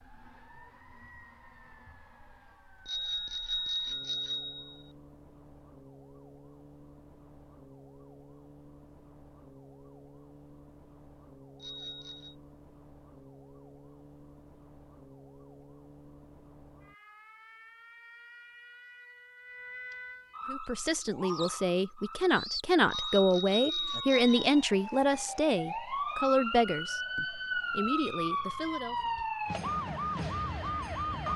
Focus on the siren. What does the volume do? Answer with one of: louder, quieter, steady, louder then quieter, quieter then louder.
louder.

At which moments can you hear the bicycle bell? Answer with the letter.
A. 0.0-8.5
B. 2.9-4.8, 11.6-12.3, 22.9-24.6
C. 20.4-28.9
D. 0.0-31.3
B.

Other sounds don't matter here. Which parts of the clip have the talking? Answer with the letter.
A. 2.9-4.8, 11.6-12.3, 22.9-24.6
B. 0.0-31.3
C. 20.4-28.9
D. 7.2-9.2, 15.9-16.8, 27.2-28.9
C.